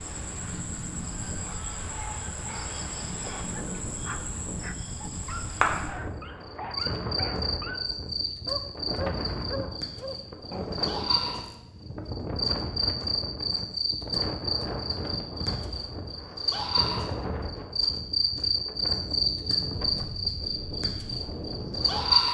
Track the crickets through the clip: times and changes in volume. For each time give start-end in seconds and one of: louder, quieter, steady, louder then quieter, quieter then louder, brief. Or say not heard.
0.0-22.2 louder.